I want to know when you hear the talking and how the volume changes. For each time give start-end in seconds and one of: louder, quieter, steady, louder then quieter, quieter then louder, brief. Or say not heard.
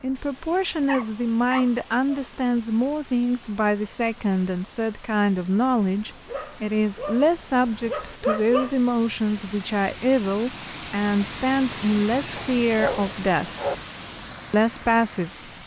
0.0-13.5 steady
14.5-15.3 brief.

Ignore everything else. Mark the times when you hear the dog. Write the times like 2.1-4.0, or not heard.
0.7-2.2, 6.2-8.8, 12.3-13.8.